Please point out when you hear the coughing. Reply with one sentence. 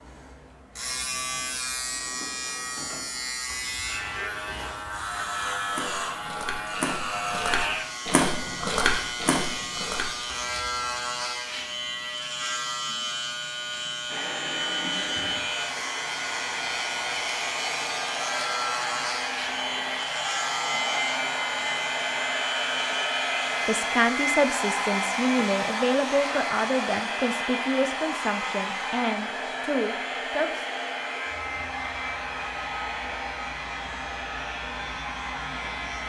The coughing can't be heard in this clip.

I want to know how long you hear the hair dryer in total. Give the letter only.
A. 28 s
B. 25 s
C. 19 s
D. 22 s
D.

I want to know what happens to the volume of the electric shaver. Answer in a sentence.
The loudness of the electric shaver goes down.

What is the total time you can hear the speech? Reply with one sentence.
You can hear the speech for 7 seconds altogether.